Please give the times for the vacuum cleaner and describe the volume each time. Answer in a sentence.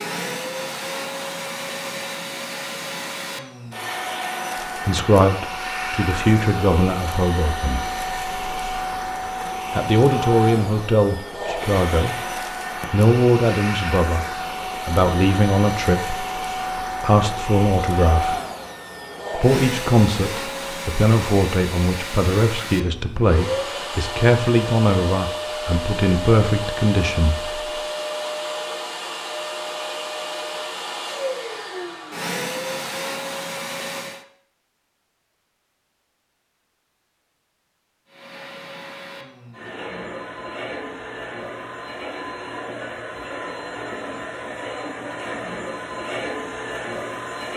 The vacuum cleaner can be heard from 0.0 to 34.2 s, at a steady volume; and from 38.0 to 47.5 s, getting louder.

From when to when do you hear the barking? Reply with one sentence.
The barking can't be heard in this clip.